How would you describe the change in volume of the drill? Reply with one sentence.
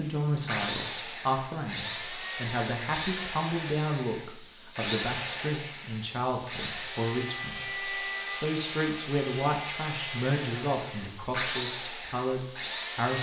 The loudness of the drill stays about the same.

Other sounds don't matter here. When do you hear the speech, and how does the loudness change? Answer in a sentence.
You can hear the speech from 0.0 to 13.1 s, at a steady volume.